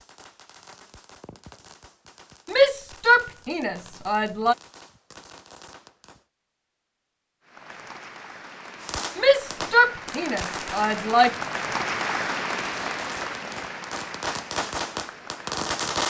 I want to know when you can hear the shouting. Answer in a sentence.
The shouting can be heard from 2.5 to 4.5 s and from 9.2 to 11.3 s.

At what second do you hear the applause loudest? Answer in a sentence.
The volume of the applause peaks at 12 seconds.